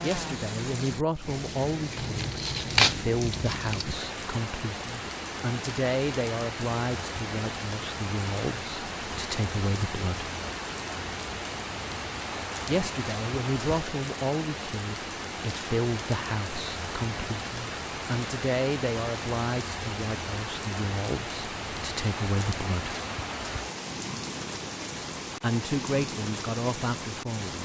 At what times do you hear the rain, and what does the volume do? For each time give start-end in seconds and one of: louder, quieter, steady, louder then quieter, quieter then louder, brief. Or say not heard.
0.0-27.6 steady.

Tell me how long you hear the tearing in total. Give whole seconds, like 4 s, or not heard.
2 s.